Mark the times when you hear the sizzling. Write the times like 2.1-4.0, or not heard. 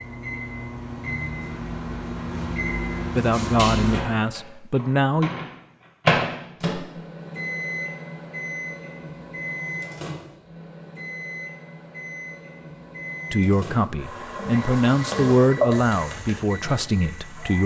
13.9-17.6.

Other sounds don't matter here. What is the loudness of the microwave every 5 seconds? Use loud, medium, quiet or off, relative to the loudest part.
loud, loud, medium, medium.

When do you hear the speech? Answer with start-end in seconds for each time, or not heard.
3.1-5.3, 13.3-17.6.